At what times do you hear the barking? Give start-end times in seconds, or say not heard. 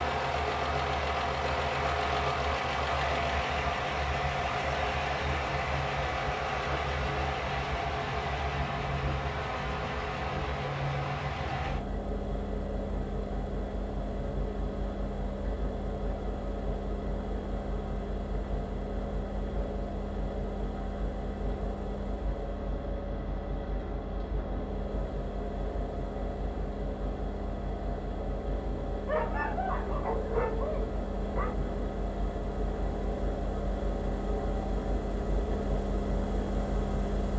29.1-31.6.